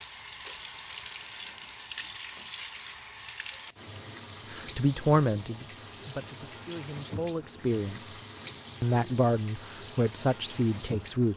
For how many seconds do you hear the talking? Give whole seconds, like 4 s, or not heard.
6 s.